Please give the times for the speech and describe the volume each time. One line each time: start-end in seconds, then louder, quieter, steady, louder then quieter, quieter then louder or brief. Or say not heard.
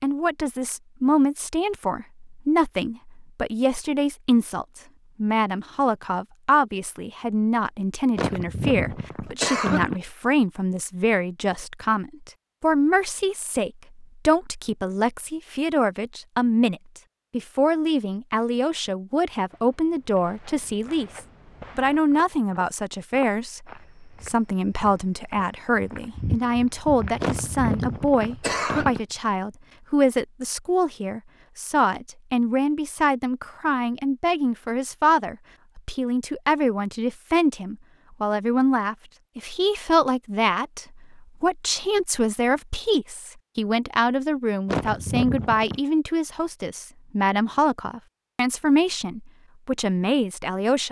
0.0-50.8 steady.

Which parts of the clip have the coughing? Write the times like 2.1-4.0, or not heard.
8.2-10.0, 27.2-29.0, 44.6-45.8.